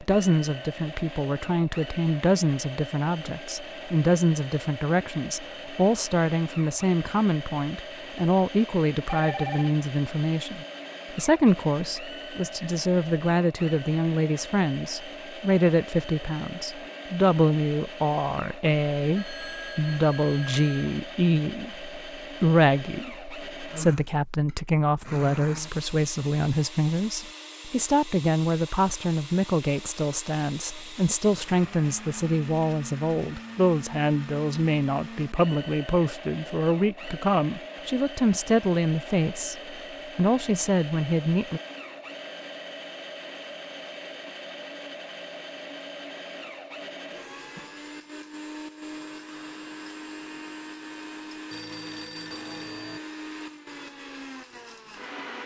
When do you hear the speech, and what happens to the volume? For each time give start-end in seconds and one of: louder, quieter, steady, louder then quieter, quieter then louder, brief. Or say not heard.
0.0-41.6 steady.